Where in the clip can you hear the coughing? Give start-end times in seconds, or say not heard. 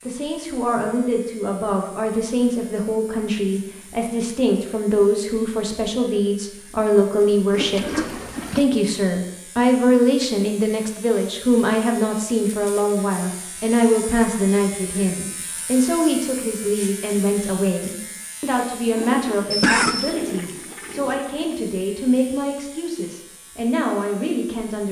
19.5-20.1.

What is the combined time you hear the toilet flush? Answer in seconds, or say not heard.
4 s.